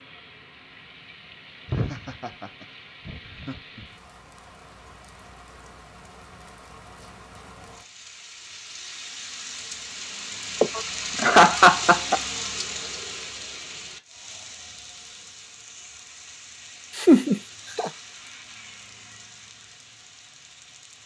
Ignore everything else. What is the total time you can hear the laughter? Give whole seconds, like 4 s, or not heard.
5 s.